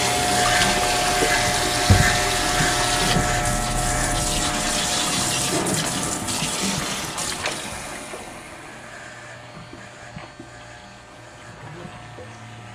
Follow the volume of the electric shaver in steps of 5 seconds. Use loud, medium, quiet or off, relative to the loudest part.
loud, quiet, quiet.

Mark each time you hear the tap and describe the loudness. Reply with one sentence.
The tap can be heard from 0.0 to 12.7 s, getting quieter.